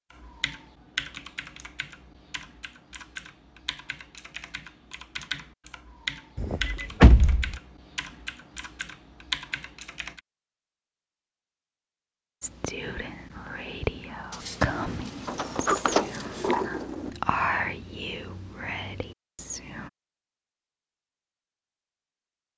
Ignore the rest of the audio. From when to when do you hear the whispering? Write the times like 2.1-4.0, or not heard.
12.4-19.9.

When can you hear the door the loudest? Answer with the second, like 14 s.
7 s.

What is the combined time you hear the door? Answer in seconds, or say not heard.
3 s.